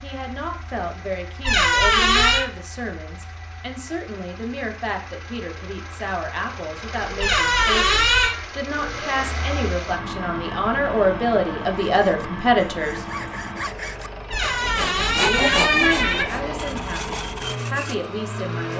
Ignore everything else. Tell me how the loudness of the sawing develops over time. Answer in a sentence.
The volume of the sawing goes up, then down.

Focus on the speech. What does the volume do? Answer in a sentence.
The loudness of the speech goes up, then down.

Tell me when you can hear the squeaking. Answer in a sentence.
The squeaking can be heard from 1.4 to 2.5 s, from 7.2 to 8.3 s and from 14.3 to 16.2 s.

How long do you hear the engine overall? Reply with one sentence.
You can hear the engine for 19 seconds altogether.